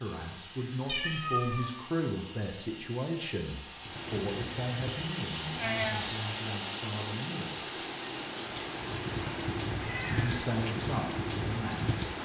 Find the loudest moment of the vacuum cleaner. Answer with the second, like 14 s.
6 s.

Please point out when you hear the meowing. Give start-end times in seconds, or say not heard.
0.8-1.8, 5.5-6.2, 9.8-10.4.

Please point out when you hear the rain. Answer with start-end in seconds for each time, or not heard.
3.8-12.2.